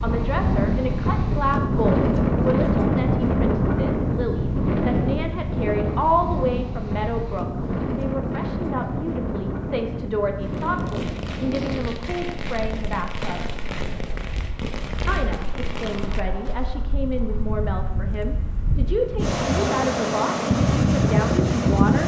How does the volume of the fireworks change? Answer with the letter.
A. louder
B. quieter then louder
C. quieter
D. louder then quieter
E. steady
E.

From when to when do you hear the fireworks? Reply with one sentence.
The fireworks can be heard from 10.4 to 16.7 s.